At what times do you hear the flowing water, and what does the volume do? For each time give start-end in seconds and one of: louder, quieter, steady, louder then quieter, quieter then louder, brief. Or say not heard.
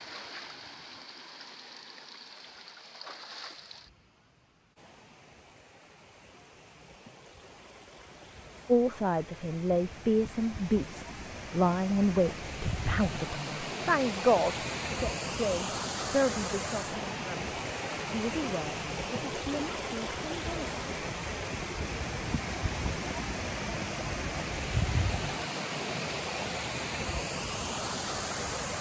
0.0-28.7 louder.